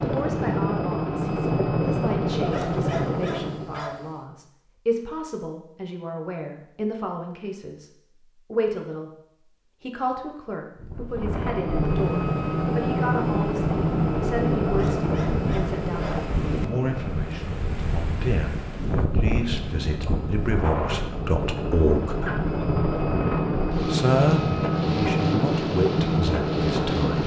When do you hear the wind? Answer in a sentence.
You can hear the wind from 10.8 to 27.2 s.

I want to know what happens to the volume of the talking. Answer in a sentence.
The loudness of the talking goes up.